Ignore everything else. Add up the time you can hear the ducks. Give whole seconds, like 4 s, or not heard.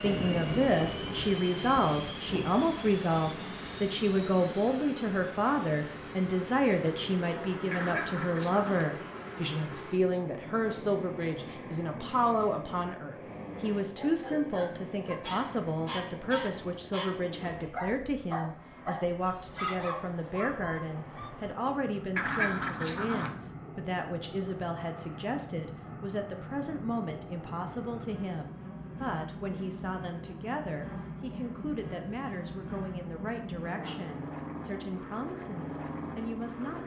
2 s.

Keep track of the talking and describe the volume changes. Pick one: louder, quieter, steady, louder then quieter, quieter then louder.
quieter.